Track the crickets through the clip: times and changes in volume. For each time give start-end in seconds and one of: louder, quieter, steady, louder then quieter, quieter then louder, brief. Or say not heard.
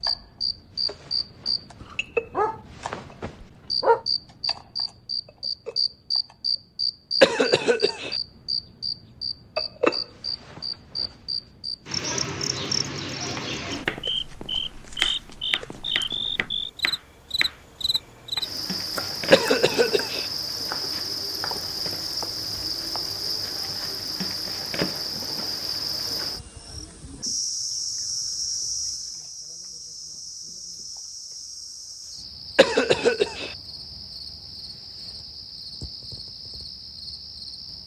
0.0-37.8 quieter.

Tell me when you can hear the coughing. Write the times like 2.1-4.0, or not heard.
7.2-8.2, 19.3-20.2, 32.5-33.5.